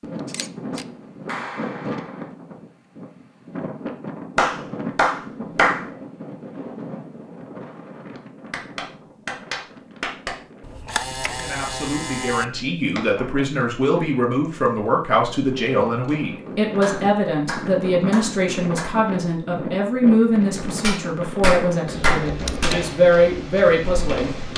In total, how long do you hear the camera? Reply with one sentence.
You can hear the camera for 3 seconds altogether.